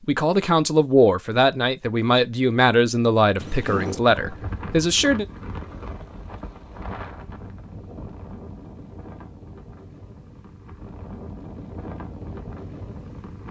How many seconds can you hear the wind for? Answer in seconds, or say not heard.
10 s.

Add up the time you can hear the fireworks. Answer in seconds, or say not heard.
not heard.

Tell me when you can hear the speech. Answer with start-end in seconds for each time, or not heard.
0.1-5.2.